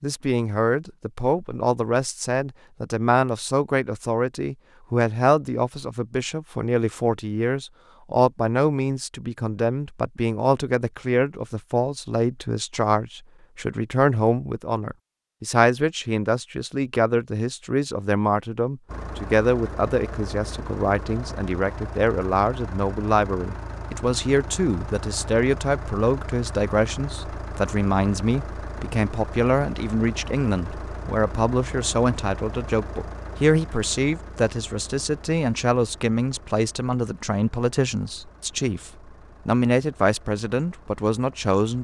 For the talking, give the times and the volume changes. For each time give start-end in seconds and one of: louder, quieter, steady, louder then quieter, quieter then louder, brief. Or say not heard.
0.0-41.7 steady.